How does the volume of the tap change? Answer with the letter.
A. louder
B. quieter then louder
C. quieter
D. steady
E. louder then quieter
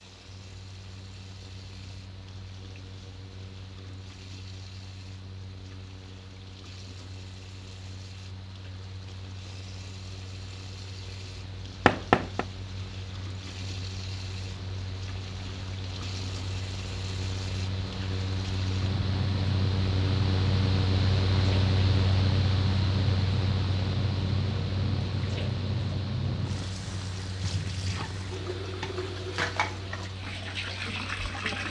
A.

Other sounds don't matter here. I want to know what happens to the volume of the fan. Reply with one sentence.
The loudness of the fan goes up, then down.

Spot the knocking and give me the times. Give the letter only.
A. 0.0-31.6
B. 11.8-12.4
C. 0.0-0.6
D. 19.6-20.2
B.